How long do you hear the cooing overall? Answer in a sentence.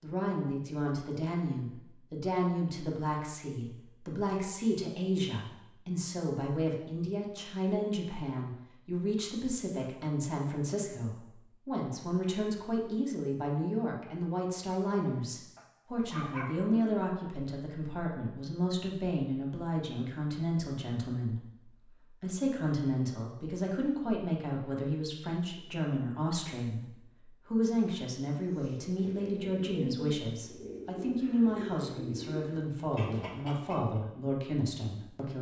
You can hear the cooing for 6 seconds altogether.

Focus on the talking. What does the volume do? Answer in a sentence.
The volume of the talking stays about the same.